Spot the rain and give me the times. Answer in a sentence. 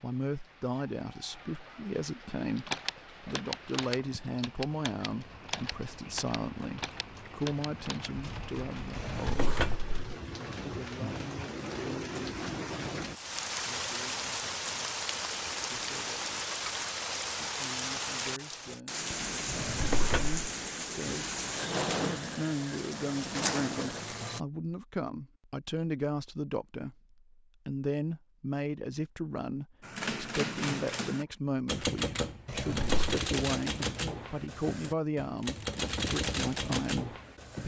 The rain can be heard from 0.0 to 24.4 s.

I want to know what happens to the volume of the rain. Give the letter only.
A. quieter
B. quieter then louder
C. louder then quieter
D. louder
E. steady
D.